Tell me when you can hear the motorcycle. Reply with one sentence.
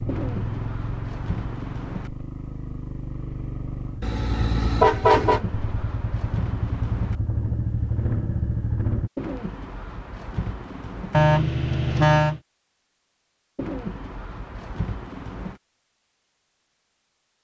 You can hear the motorcycle from 0.0 to 9.1 s.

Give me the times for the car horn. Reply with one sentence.
The car horn can be heard from 4.0 to 5.4 s and from 11.1 to 12.4 s.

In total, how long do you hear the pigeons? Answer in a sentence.
You can hear the pigeons for 8 seconds altogether.